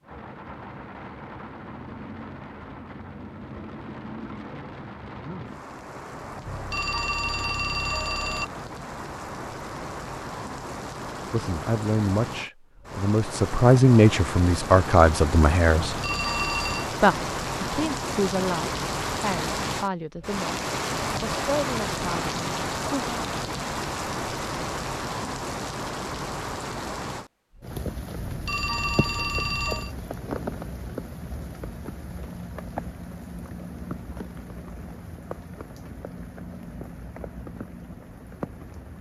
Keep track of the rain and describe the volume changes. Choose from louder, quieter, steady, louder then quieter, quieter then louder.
louder then quieter.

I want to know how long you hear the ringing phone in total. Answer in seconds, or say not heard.
5 s.